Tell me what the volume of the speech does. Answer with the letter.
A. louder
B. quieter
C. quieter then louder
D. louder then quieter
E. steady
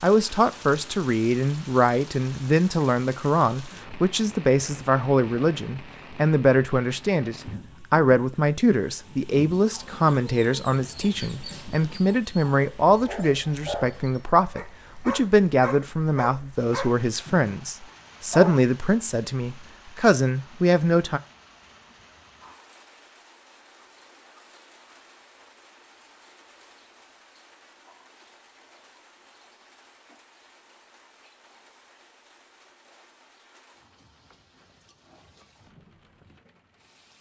E.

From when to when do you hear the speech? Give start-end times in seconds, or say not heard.
0.0-21.2.